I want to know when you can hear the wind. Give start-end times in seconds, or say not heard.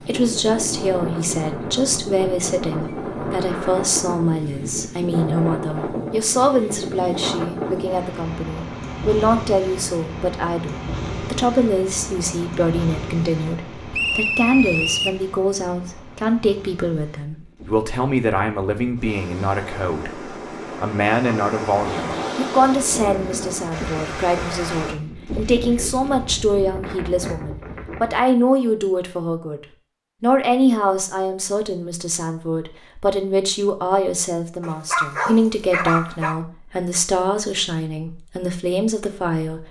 0.0-28.2.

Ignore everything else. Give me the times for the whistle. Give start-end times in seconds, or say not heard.
13.9-15.2.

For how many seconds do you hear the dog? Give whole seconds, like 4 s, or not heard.
2 s.